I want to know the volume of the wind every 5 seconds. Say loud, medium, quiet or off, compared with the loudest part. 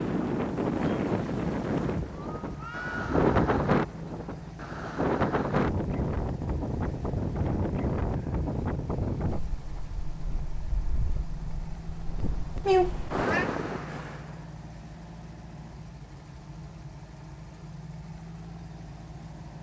loud, loud, medium, off.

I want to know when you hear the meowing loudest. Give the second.
13 s.